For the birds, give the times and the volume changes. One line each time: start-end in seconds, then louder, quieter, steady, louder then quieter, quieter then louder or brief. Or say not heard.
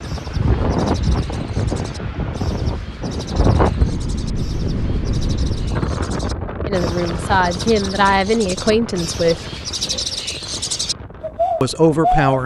0.0-12.3 louder.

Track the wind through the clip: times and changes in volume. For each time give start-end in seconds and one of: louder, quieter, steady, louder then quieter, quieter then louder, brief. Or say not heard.
0.0-12.4 quieter.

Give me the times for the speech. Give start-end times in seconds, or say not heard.
6.7-9.4, 11.6-12.4.